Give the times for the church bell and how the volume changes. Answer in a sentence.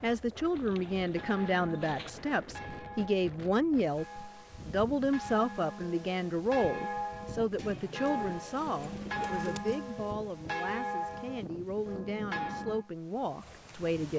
You can hear the church bell from 1.1 to 12.9 s, getting louder.